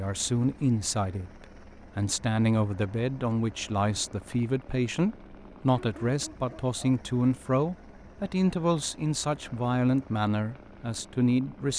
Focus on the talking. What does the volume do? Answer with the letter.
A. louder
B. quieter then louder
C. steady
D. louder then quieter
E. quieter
C.